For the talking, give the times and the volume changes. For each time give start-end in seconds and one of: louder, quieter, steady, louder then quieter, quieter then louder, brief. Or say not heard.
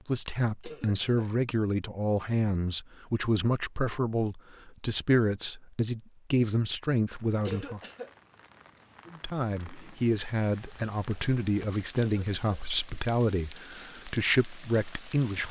0.1-7.8 steady
9.1-15.4 steady.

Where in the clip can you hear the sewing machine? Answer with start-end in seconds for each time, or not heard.
not heard.